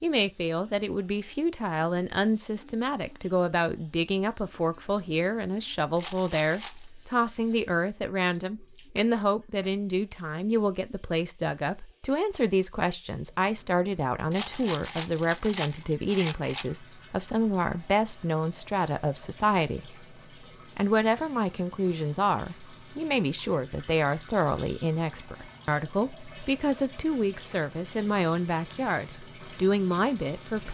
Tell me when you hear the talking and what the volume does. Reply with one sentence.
You can hear the talking from 0.0 to 20.1 s, at a steady volume; and from 20.8 to 30.6 s, at a steady volume.